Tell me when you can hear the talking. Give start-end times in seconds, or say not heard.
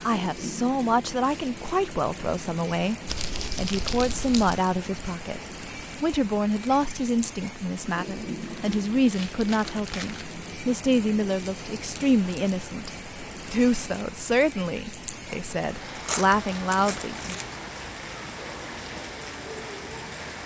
0.1-3.0, 3.5-5.4, 6.0-12.9, 13.5-17.4.